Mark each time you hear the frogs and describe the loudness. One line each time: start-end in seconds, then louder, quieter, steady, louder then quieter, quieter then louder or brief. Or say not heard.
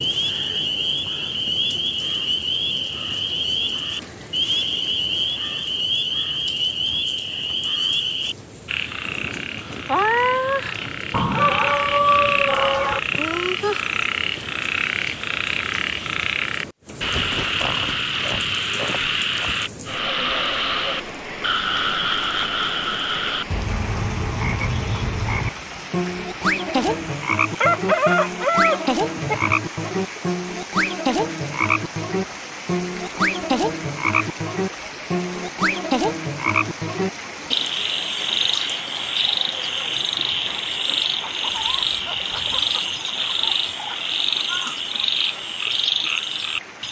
0.0-46.8 steady.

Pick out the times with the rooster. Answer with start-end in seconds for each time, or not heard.
11.1-13.0, 27.6-29.6, 41.2-44.1.